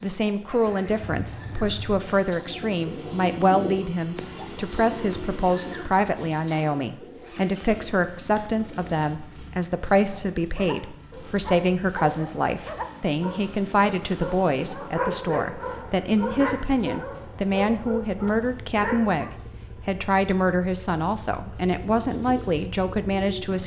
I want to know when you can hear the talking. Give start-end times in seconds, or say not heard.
0.0-23.6.